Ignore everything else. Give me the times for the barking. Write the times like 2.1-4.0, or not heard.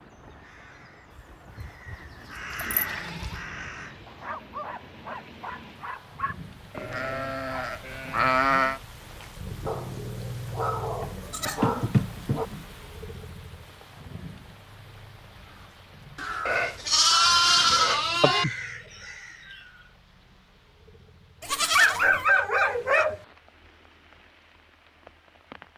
4.0-6.3, 9.7-12.5, 21.8-23.2.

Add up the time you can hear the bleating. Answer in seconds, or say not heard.
8 s.